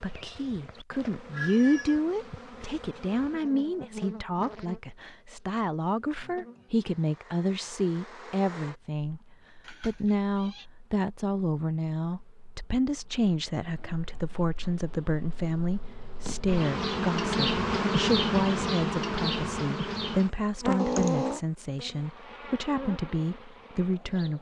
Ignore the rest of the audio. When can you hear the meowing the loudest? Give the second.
21 s.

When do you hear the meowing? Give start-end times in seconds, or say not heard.
1.3-2.0, 9.6-10.7, 20.8-21.4.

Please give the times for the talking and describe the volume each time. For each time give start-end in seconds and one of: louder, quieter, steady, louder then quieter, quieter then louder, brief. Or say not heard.
0.0-24.3 steady.